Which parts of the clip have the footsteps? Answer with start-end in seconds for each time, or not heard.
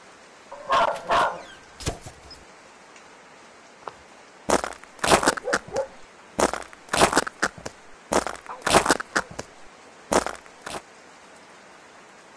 3.9-9.4, 10.1-10.8.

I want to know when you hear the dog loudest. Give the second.
1 s.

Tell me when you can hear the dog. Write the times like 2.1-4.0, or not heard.
0.5-2.4, 5.2-5.9, 8.4-9.3.